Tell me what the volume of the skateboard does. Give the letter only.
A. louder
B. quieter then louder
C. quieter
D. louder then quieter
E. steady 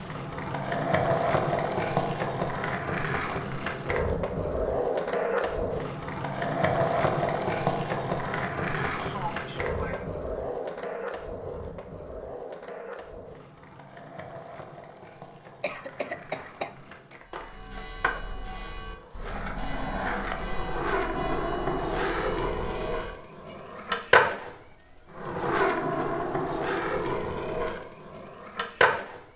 B.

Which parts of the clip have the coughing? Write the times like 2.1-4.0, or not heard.
8.9-10.1, 15.6-17.1.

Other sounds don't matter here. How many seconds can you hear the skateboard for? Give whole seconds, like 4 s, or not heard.
29 s.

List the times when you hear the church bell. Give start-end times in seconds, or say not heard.
17.2-23.6.